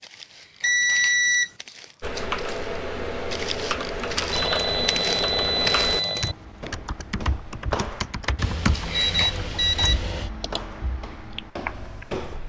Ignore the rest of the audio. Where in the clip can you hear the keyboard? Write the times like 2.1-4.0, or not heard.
2.0-12.1.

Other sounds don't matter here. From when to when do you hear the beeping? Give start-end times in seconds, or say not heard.
0.6-1.5, 4.3-6.3, 8.3-10.3.